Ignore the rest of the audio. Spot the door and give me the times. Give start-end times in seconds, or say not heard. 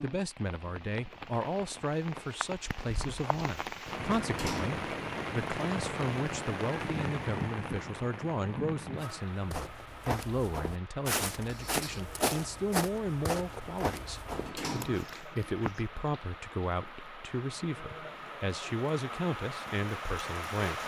4.1-4.8, 14.3-15.1.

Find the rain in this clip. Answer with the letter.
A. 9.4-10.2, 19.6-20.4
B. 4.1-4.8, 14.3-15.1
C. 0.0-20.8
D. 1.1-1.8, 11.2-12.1
C.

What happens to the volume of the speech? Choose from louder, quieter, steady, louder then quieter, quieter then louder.
steady.